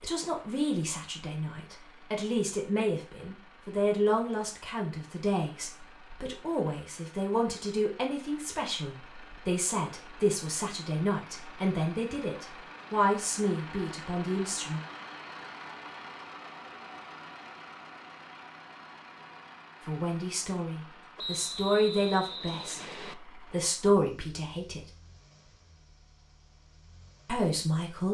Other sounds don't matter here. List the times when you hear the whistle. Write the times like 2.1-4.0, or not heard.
21.1-23.1.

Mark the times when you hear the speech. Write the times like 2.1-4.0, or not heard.
0.0-14.8, 19.9-24.8, 27.2-28.1.